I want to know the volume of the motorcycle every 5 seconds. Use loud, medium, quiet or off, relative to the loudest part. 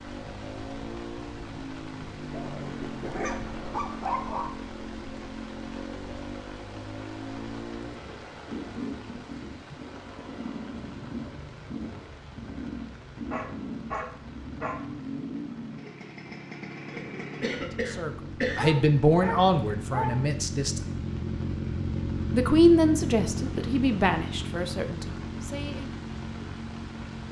medium, medium, medium, medium, loud, medium.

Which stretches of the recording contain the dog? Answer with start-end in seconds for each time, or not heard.
2.3-4.5, 13.3-14.8, 18.6-20.2.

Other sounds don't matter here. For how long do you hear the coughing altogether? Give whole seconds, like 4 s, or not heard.
2 s.